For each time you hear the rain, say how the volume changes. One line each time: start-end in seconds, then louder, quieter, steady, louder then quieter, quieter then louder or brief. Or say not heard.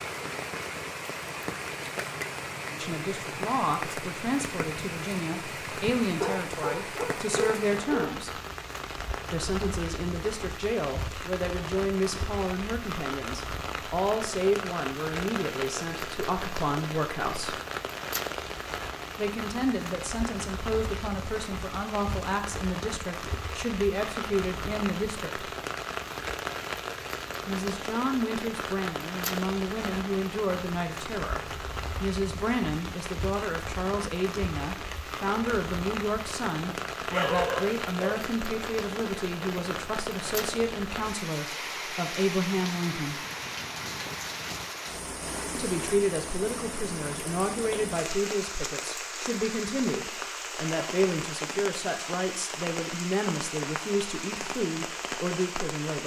0.0-56.0 steady.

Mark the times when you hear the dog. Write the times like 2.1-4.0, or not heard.
6.2-8.2, 37.1-38.1.